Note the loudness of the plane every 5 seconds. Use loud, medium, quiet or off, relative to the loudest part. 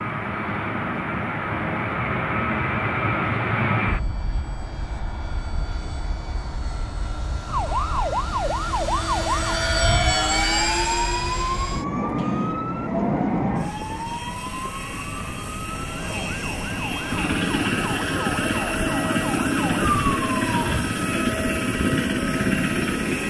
loud, medium, loud, loud, loud.